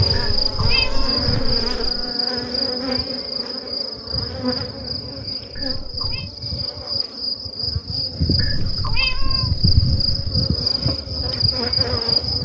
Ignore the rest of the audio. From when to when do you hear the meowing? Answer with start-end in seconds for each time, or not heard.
0.1-2.0, 5.5-6.3, 8.3-10.2.